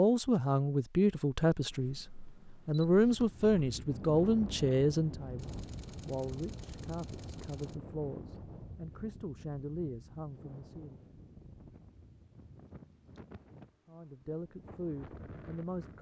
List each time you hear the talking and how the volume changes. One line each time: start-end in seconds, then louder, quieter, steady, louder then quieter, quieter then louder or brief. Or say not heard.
0.0-2.0 brief
2.6-11.0 quieter
13.8-15.9 brief.